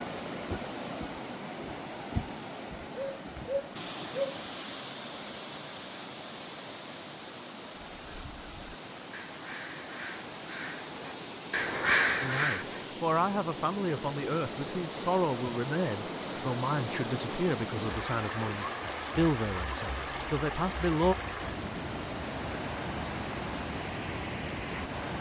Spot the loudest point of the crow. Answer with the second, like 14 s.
12 s.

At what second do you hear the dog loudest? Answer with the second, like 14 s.
4 s.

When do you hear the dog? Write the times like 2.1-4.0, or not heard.
3.0-4.4.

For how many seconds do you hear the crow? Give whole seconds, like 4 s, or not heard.
5 s.